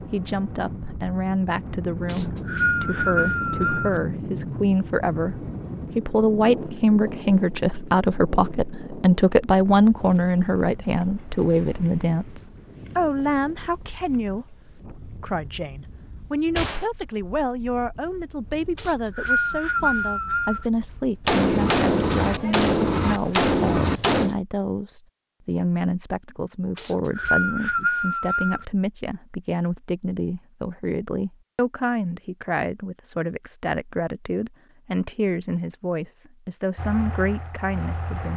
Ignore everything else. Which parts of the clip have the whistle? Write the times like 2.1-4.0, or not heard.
2.0-4.0, 18.8-20.6, 26.8-28.6.